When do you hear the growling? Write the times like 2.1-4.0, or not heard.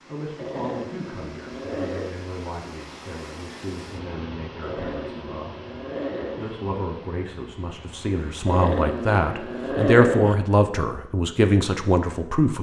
0.3-2.1, 4.6-6.5, 8.4-10.4.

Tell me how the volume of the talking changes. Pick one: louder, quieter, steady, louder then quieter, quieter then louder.
louder.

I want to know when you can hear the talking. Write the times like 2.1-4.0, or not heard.
0.1-5.7, 6.3-12.5.